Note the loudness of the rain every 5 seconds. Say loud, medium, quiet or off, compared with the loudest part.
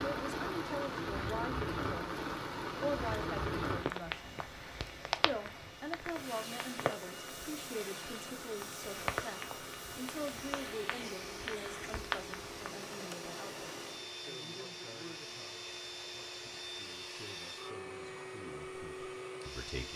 loud, loud, medium, off.